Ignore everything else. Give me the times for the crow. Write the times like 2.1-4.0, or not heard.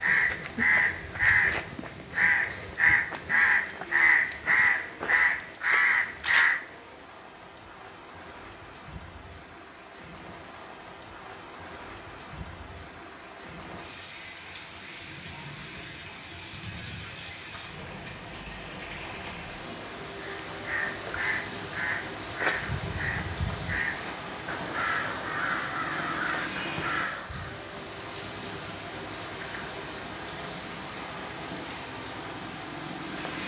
0.0-6.6, 20.1-27.6.